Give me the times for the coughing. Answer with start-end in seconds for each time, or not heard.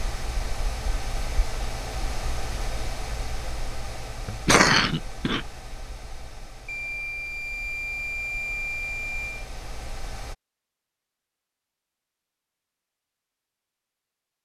4.2-5.5.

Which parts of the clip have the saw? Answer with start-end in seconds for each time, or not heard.
not heard.